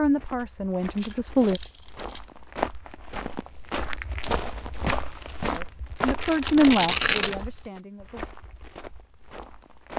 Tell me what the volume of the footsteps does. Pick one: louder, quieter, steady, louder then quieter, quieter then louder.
louder then quieter.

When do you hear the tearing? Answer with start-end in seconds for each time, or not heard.
0.9-2.2, 6.0-7.8.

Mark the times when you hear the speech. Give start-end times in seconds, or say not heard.
0.0-1.6, 5.5-8.2.